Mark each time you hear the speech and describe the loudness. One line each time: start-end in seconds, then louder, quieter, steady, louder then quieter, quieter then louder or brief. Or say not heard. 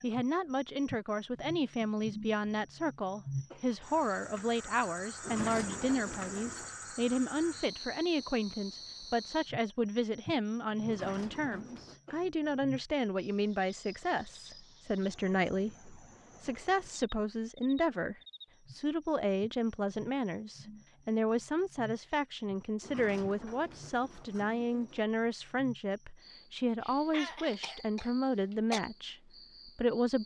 0.0-30.2 steady.